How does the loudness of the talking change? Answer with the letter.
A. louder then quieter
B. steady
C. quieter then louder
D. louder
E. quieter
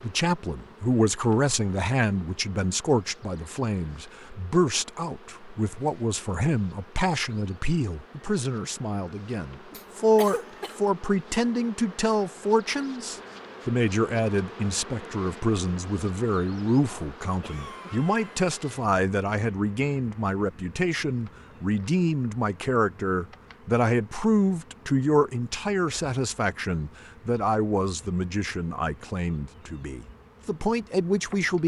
B.